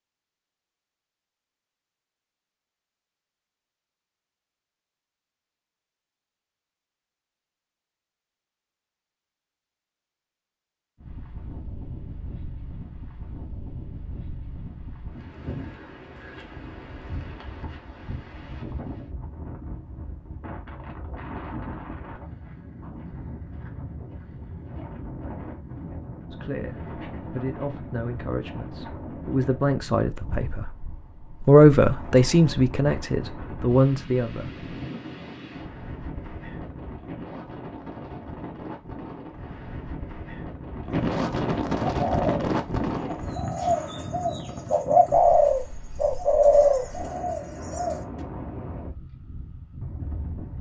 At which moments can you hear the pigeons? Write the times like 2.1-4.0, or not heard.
41.9-48.0.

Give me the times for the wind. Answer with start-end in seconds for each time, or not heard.
11.0-50.5.